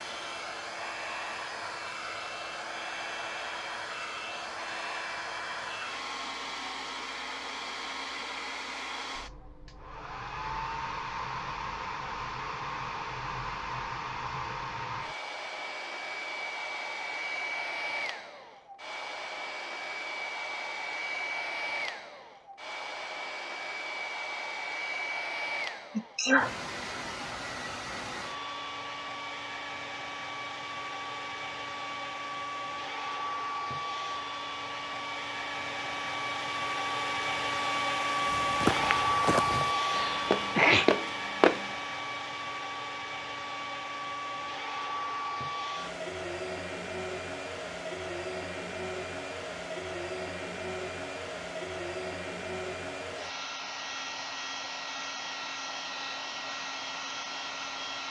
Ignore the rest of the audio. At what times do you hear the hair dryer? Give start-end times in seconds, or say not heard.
0.0-58.0.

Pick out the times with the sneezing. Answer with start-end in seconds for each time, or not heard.
25.9-26.5, 39.9-41.0.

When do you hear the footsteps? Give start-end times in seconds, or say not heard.
38.2-41.6.